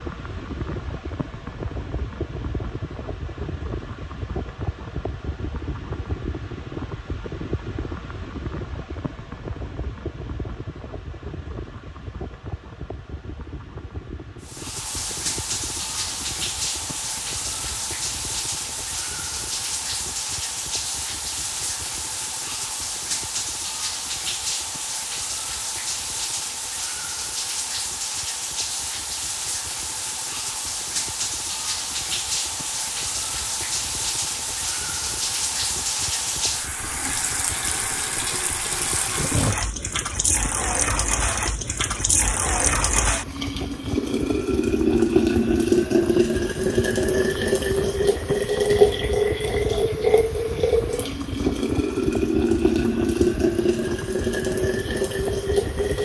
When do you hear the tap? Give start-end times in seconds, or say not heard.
14.4-56.0.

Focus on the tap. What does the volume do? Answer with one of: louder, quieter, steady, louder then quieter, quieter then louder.
louder.